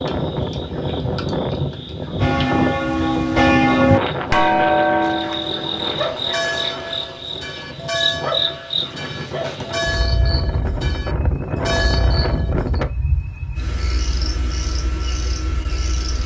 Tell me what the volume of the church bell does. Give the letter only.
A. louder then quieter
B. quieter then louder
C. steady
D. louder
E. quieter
E.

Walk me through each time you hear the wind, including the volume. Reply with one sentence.
The wind can be heard from 0.0 to 12.9 s, getting quieter then louder.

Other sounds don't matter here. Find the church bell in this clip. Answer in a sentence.
The church bell can be heard from 2.2 to 12.7 s.